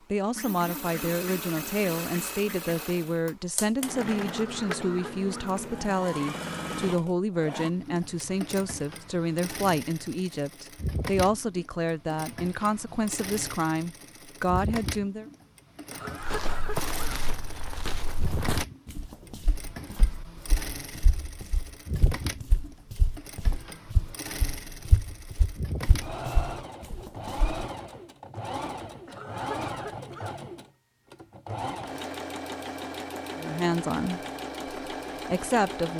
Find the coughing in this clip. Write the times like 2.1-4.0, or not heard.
4.2-5.5, 15.9-17.2, 29.1-30.4.